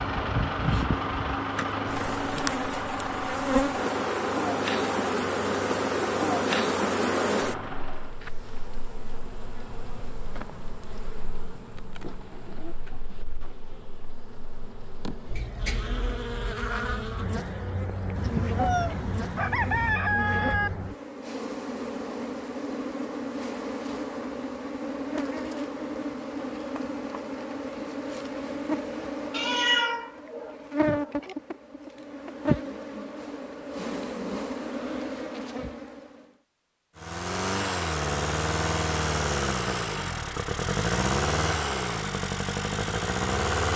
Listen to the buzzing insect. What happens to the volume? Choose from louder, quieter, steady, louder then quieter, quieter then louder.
quieter then louder.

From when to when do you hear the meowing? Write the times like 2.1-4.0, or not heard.
18.1-19.9, 29.3-31.4.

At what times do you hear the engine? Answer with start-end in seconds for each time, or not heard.
0.0-8.2, 37.0-43.7.